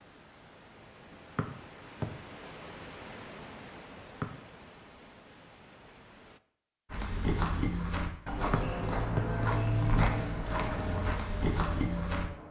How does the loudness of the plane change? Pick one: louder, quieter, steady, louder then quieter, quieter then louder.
quieter.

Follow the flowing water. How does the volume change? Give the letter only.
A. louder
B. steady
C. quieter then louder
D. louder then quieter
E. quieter
D.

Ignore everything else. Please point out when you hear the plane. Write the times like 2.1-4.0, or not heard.
8.3-12.4.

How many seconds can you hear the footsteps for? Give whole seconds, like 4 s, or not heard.
5 s.